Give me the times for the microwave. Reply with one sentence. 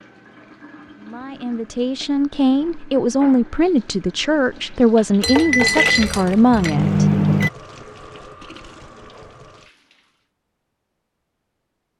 The microwave can be heard from 5.5 to 7.5 s.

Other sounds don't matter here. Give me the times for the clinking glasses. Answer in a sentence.
The clinking glasses can be heard from 5.2 to 6.8 s.